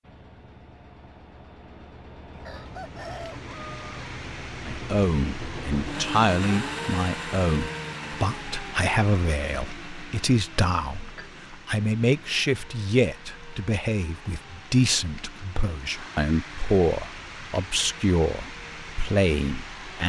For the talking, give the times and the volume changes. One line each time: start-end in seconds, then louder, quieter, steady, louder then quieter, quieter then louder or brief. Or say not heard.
4.7-20.0 steady.